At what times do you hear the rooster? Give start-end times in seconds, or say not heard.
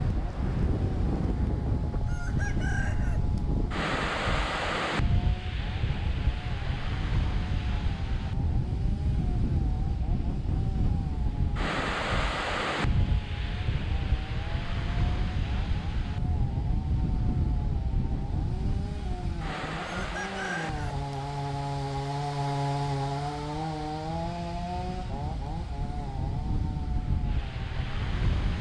2.0-3.4, 19.8-21.1.